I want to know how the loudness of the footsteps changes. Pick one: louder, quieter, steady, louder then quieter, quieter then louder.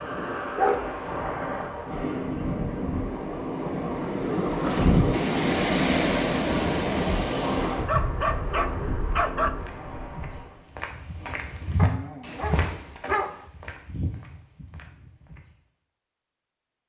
louder then quieter.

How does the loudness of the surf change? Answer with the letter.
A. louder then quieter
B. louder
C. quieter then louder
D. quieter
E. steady
A.